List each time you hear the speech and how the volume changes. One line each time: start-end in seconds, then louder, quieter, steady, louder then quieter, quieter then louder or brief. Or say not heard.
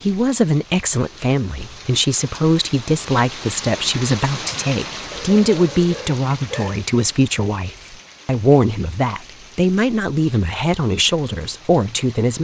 0.0-12.3 steady.